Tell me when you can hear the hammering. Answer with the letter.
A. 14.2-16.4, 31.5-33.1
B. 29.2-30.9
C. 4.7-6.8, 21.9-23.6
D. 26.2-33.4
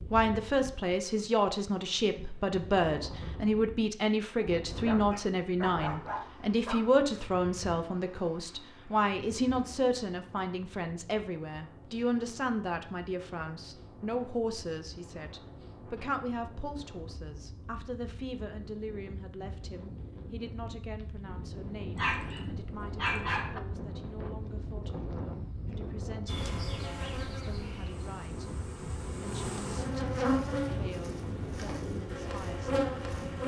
B.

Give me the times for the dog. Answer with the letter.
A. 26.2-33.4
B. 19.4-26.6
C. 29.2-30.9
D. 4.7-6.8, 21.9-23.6
D.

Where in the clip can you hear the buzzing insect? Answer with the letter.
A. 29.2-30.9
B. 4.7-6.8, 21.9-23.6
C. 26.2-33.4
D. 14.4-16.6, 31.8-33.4
C.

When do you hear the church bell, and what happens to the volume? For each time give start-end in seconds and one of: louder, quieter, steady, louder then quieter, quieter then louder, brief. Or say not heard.
not heard.